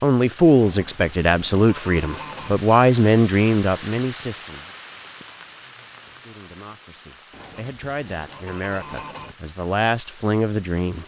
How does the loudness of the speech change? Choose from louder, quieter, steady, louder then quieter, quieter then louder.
quieter then louder.